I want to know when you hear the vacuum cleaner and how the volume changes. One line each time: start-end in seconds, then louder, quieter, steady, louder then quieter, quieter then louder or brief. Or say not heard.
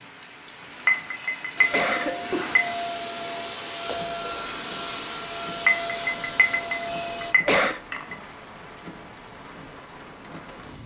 1.6-7.3 steady.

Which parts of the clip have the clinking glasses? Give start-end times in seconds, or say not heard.
0.8-2.8, 5.7-8.2.